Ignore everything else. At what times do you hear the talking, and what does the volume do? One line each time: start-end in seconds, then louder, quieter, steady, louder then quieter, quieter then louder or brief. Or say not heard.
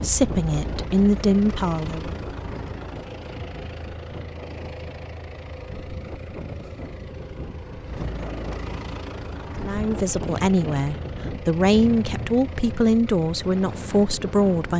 0.0-2.1 brief
9.6-14.7 steady.